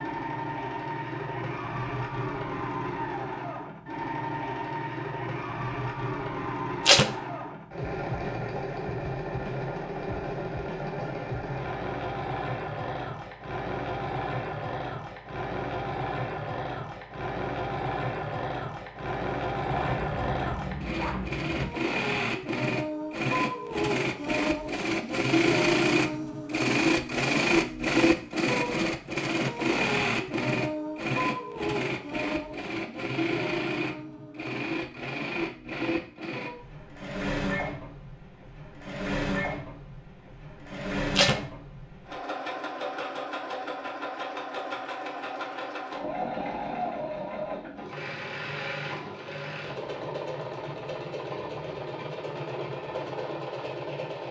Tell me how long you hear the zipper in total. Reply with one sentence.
You can hear the zipper for 2 seconds altogether.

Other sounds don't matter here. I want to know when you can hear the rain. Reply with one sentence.
The rain can't be heard in this clip.